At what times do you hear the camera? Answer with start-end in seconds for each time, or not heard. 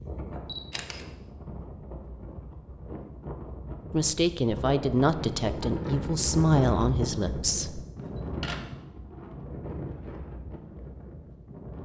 0.5-1.1, 8.0-8.8.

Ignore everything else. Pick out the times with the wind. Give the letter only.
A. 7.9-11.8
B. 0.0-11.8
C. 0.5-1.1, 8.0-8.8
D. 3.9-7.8
B.